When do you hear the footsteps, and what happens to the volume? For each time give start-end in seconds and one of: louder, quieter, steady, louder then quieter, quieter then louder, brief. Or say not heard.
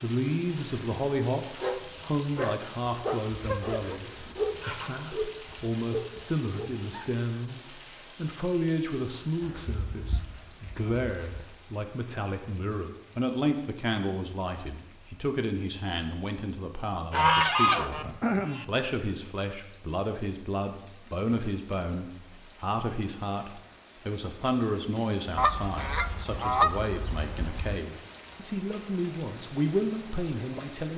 not heard.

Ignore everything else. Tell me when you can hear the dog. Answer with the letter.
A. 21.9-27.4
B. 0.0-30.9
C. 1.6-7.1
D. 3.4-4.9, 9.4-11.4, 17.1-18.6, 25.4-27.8
C.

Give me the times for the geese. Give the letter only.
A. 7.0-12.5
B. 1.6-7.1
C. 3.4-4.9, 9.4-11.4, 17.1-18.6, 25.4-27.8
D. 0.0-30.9
C.